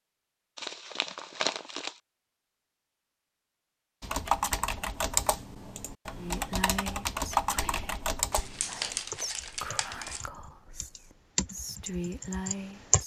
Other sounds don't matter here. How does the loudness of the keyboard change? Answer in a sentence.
The loudness of the keyboard goes down, then up.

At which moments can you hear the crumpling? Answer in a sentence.
You can hear the crumpling from 0.6 to 2.0 s and from 8.3 to 10.2 s.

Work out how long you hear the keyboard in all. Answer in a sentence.
The keyboard can be heard for 9 seconds in total.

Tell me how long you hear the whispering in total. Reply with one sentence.
The whispering can be heard for 7 seconds in total.